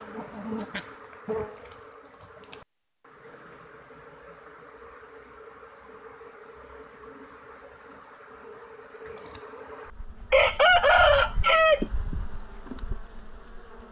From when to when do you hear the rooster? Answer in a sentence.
The rooster can be heard from 10.3 to 11.8 s.